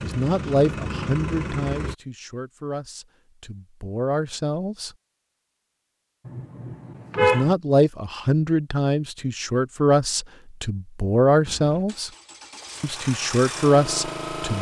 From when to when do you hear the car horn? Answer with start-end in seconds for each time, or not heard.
6.2-7.5.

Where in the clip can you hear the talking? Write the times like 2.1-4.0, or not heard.
0.0-4.9, 7.2-12.1, 12.8-14.5.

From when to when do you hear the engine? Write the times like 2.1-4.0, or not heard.
0.0-1.9, 11.4-14.5.